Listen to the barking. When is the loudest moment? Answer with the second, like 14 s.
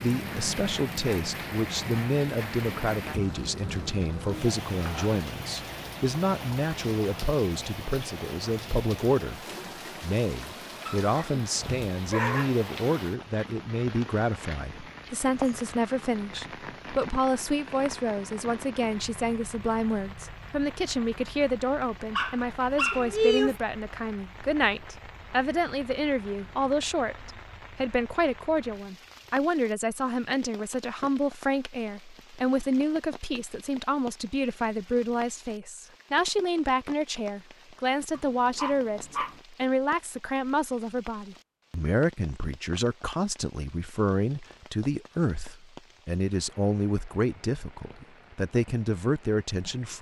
23 s.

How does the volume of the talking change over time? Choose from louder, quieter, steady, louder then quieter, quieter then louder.
steady.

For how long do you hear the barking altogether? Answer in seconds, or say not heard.
4 s.